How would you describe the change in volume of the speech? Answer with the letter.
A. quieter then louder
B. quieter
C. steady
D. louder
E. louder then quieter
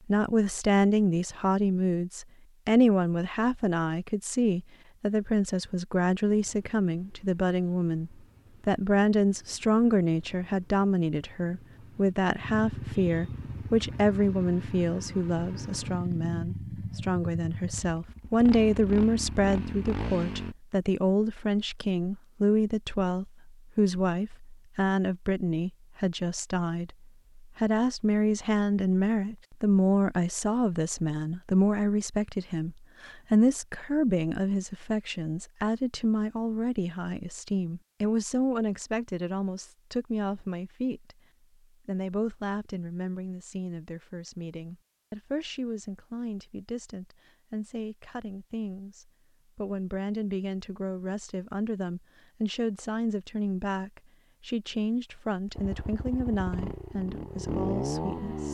B.